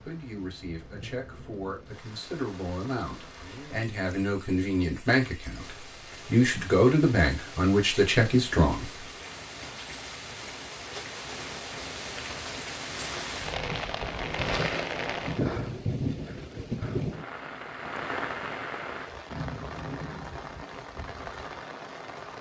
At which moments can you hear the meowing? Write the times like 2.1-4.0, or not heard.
not heard.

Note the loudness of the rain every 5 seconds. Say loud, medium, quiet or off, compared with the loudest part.
quiet, medium, loud, loud, medium.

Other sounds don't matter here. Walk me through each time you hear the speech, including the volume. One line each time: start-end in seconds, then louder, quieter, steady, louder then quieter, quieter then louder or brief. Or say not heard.
0.0-9.1 louder.